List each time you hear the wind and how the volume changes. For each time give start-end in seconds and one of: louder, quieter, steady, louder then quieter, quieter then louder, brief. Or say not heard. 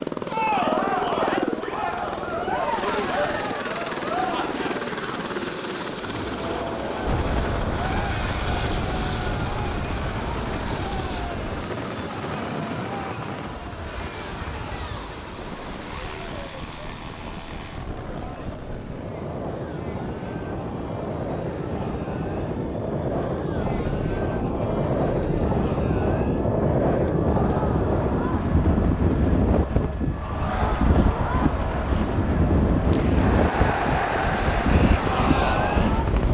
7.0-36.3 quieter then louder.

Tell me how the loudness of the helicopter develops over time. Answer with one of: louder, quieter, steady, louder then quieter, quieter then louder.
quieter then louder.